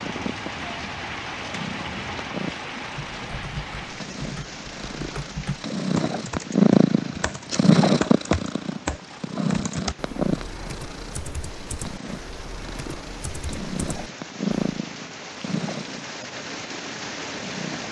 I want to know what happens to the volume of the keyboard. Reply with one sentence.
The volume of the keyboard goes up, then down.